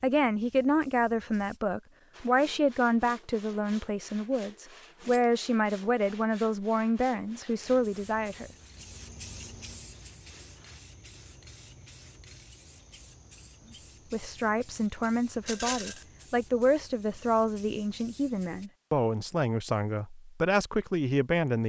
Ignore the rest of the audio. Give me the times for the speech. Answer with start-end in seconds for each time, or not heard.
0.0-8.5, 14.1-21.6.